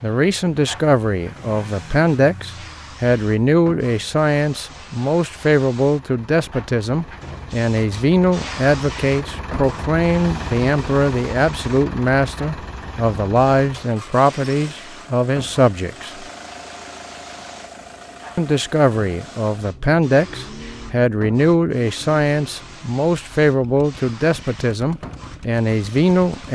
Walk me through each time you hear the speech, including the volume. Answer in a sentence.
You can hear the speech from 0.0 to 16.2 s, at a steady volume; and from 18.4 to 26.5 s, at a steady volume.